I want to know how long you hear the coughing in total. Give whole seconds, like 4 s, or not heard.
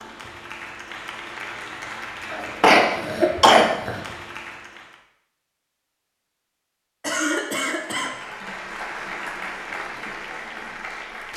3 s.